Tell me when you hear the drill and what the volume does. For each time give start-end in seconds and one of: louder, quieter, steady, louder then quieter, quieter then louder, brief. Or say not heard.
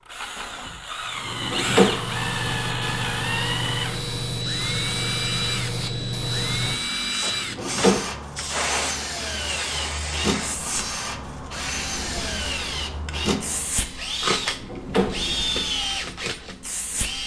0.1-17.2 steady.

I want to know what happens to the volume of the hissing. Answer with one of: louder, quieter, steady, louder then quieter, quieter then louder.
quieter.